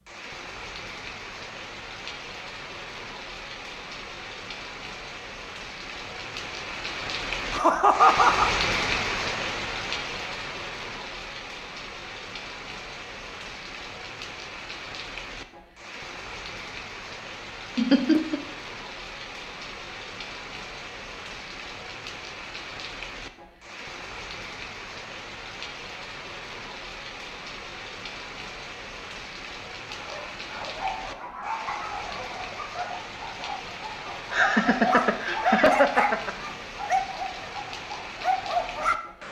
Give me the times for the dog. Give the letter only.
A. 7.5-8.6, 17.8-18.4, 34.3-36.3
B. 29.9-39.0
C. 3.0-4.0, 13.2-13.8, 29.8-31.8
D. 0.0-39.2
B.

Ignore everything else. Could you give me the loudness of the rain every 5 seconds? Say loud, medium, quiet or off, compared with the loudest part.
medium, loud, medium, medium, medium, medium, medium, medium.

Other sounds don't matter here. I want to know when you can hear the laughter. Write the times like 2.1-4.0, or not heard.
7.5-8.6, 17.8-18.4, 34.3-36.3.